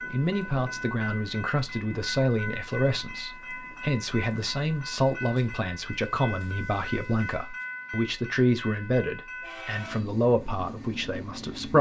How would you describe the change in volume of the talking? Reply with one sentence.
The volume of the talking stays about the same.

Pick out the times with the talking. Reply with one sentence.
You can hear the talking from 0.1 to 11.7 s.